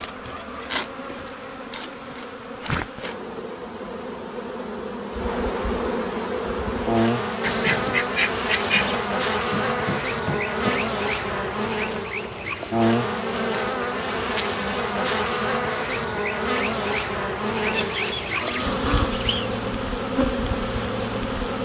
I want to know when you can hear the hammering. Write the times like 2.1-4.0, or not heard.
9.5-10.9.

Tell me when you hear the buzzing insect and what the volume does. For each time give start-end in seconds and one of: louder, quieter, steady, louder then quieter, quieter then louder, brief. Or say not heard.
0.0-21.5 louder.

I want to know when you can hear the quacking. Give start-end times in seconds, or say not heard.
7.4-9.0, 17.7-19.5.